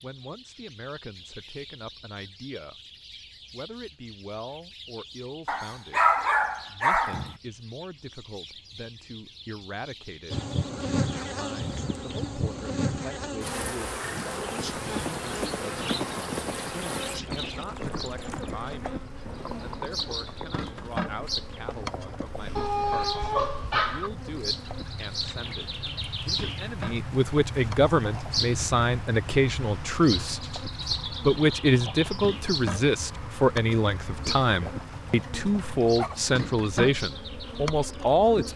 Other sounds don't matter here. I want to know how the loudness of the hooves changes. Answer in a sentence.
The volume of the hooves goes down.